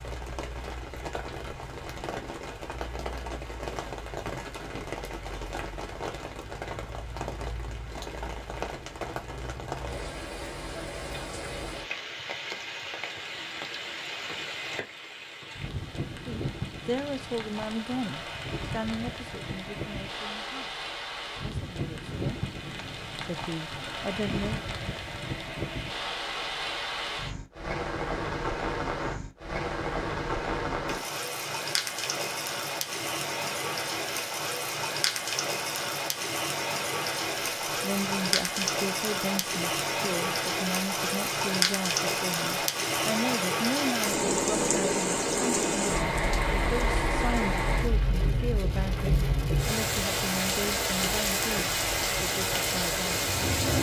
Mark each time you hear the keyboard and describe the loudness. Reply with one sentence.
You can't hear the keyboard here.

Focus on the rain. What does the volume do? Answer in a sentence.
The loudness of the rain goes up.